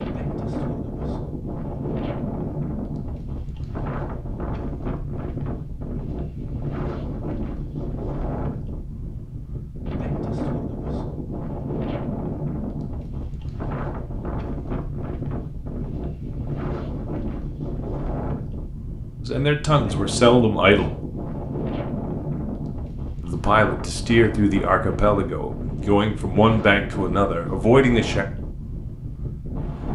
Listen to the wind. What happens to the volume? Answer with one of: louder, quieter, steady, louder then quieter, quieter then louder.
steady.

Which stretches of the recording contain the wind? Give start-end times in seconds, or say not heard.
0.0-29.8.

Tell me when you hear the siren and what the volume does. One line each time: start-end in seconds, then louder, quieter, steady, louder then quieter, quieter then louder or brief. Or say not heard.
not heard.